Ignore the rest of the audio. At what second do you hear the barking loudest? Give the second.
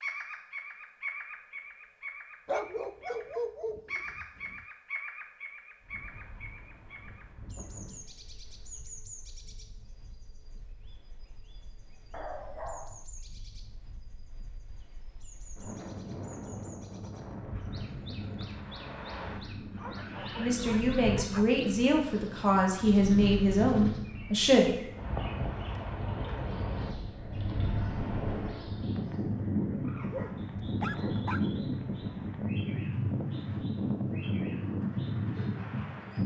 3 s.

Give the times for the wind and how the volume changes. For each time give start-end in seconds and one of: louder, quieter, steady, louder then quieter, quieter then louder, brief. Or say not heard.
5.8-36.2 louder.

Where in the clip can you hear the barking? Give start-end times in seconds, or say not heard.
2.5-4.7, 12.1-13.1, 19.8-21.4, 30.1-31.4.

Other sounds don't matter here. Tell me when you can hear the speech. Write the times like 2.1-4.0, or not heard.
20.4-24.7.